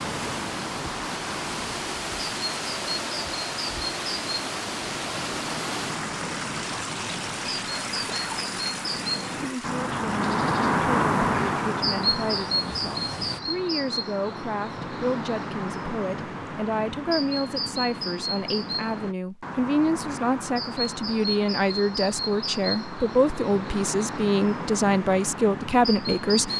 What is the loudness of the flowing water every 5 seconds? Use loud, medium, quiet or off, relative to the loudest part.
loud, loud, medium, off, off, off.